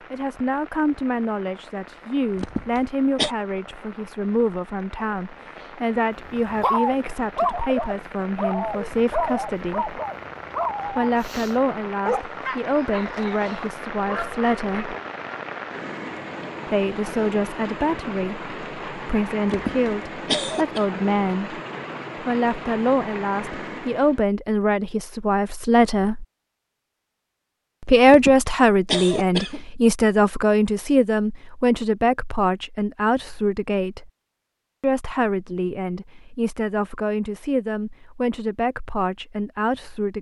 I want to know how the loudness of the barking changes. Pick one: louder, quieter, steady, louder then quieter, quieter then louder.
quieter.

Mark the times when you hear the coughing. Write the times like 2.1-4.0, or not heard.
2.4-3.3, 19.4-20.9, 28.1-29.6.